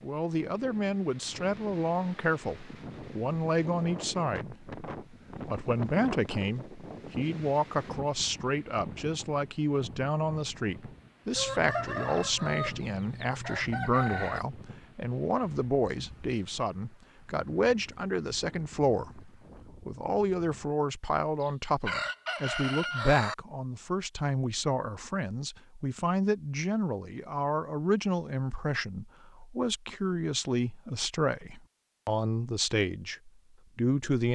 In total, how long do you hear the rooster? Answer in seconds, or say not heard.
5 s.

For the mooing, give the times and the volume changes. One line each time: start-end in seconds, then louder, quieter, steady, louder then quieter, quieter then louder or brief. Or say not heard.
not heard.